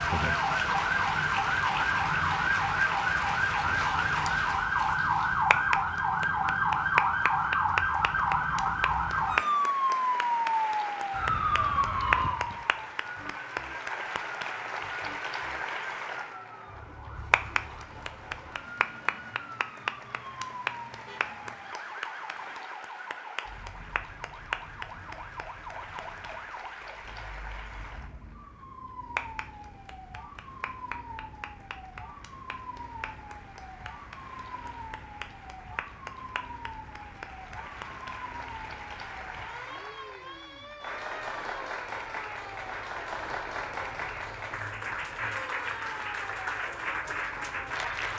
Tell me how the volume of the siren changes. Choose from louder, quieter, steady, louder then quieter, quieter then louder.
quieter.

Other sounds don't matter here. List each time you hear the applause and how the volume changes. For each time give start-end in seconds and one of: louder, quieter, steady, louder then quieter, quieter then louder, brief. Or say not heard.
0.0-48.1 quieter then louder.